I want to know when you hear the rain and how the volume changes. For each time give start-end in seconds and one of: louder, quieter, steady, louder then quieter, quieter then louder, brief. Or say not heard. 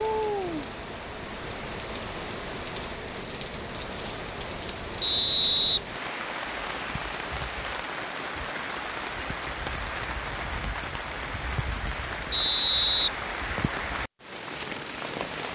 0.0-15.5 steady.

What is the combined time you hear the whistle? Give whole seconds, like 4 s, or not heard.
2 s.